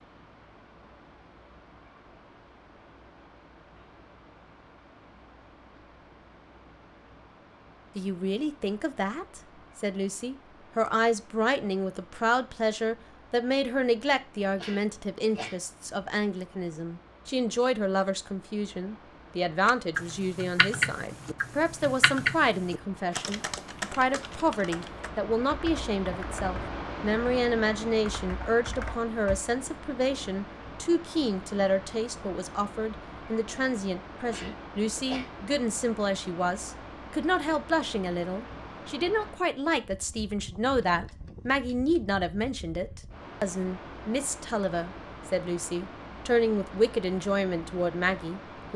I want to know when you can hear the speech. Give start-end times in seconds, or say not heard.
8.0-48.7.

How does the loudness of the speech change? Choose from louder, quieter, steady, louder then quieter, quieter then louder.
steady.